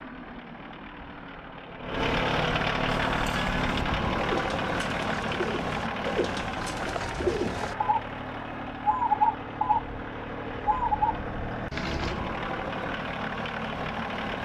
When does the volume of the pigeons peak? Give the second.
9 s.